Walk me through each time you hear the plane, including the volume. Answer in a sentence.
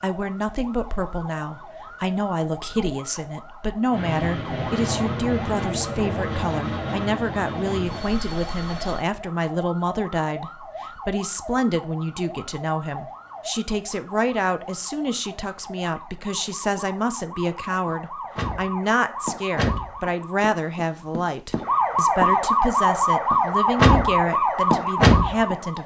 You can hear the plane from 3.9 to 9.1 s, getting quieter.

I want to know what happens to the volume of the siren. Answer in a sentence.
The volume of the siren goes up.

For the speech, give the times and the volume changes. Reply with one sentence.
You can hear the speech from 0.0 to 25.8 s, at a steady volume.